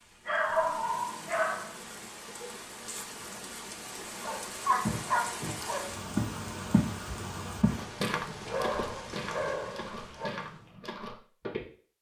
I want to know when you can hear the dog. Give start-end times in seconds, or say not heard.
0.2-1.8, 4.2-5.9, 8.4-10.3.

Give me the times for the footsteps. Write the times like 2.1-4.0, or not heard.
4.8-7.0, 7.6-11.7.